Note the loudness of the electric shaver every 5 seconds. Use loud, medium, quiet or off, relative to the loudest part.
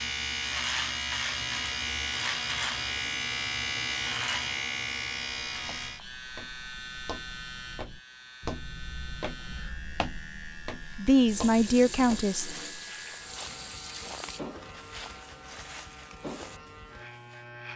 loud, medium, quiet, quiet.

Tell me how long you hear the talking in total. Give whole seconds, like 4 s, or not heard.
2 s.